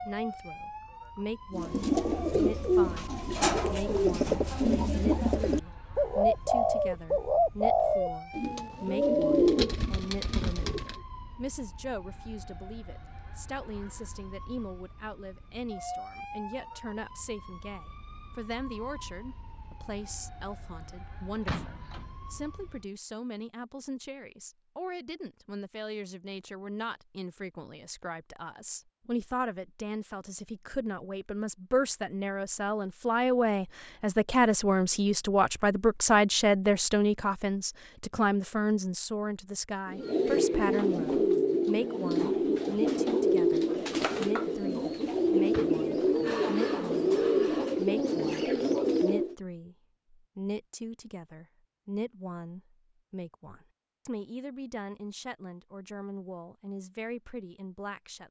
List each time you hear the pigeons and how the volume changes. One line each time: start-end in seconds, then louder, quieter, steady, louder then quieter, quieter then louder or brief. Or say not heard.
1.5-11.0 steady
39.9-49.4 steady.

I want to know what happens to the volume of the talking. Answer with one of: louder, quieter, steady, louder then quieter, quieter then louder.
louder then quieter.